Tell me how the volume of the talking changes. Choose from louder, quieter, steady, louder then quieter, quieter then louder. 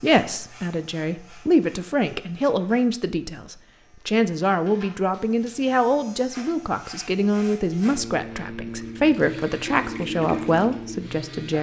steady.